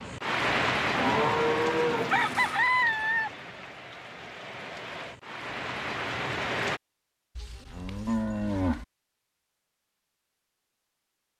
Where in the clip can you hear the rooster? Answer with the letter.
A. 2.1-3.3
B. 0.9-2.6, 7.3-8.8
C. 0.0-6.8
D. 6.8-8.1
A.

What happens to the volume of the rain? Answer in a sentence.
The volume of the rain goes down, then up.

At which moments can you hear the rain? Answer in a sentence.
The rain can be heard from 0.0 to 6.8 s.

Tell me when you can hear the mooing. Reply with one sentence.
The mooing can be heard from 0.9 to 2.6 s and from 7.3 to 8.8 s.